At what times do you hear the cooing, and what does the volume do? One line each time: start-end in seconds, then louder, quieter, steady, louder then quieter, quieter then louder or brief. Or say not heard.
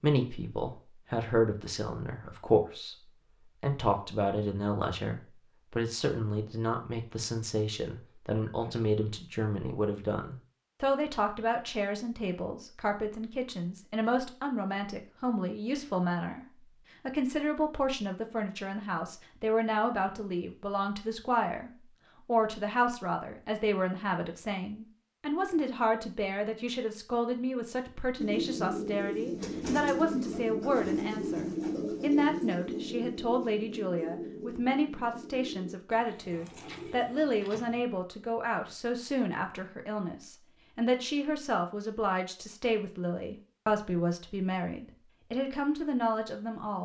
28.1-37.8 quieter.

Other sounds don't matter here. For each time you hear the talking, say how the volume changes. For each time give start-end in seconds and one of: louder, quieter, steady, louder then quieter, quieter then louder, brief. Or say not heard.
0.0-3.0 brief
3.6-16.4 steady
17.1-46.8 steady.